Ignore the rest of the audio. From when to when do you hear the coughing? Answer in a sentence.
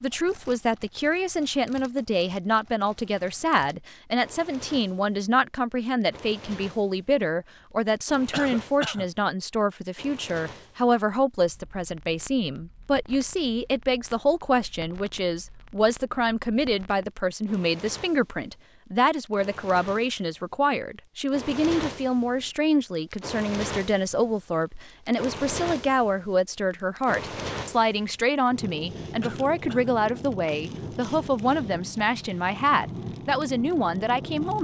You can hear the coughing from 8.3 to 9.1 s and from 29.2 to 29.9 s.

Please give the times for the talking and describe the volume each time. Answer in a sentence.
You can hear the talking from 0.0 to 34.5 s, at a steady volume.